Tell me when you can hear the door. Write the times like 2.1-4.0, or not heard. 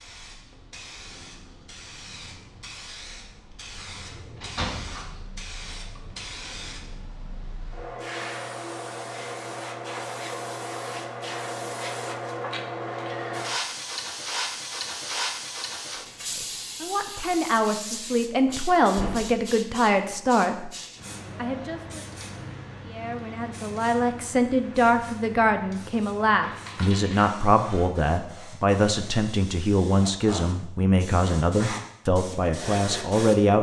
4.4-5.0, 18.4-19.4, 26.4-27.4.